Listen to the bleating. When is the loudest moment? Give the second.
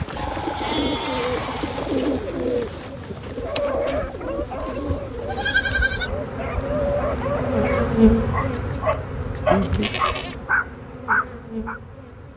6 s.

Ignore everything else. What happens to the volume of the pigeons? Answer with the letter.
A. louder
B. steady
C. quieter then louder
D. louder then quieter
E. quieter
E.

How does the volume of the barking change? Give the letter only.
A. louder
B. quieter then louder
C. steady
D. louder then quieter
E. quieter
A.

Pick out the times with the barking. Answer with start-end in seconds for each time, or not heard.
3.4-11.8.